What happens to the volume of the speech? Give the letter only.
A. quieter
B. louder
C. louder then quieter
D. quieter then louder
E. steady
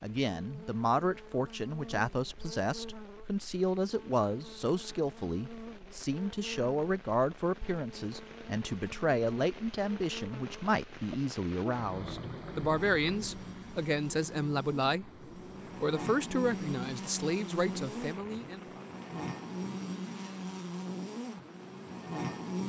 E.